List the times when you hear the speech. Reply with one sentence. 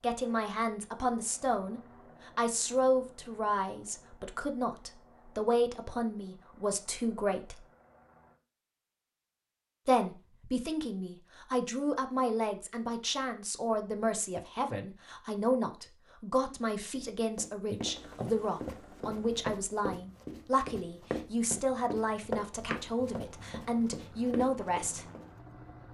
You can hear the speech from 0.0 to 7.6 s and from 9.8 to 25.1 s.